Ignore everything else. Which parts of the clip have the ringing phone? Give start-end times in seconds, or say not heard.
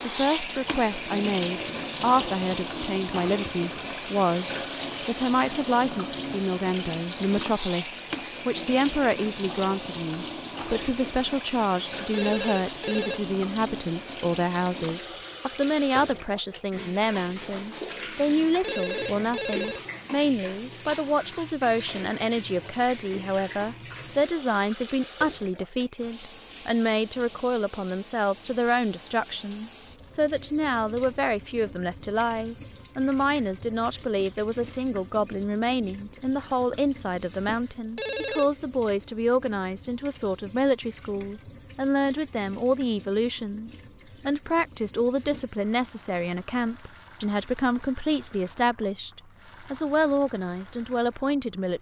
12.1-13.2, 18.6-19.9, 38.0-38.5.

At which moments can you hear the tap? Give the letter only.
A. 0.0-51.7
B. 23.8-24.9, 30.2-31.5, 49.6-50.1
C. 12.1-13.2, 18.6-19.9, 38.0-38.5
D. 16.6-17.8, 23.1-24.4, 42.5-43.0
A.